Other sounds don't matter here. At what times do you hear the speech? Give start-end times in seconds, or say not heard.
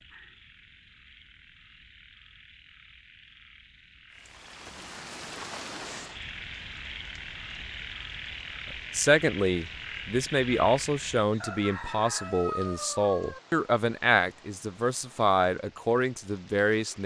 8.9-17.0.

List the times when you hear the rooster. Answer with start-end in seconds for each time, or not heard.
11.4-13.4.